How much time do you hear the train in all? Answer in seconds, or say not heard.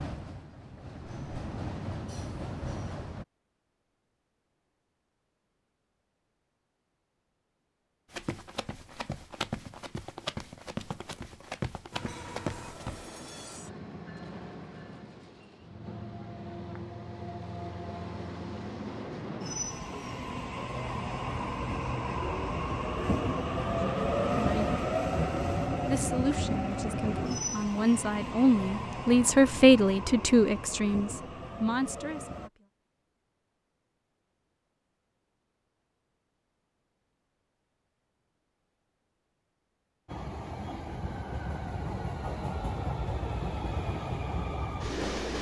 29 s.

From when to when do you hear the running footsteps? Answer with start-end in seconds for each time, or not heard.
8.1-13.1.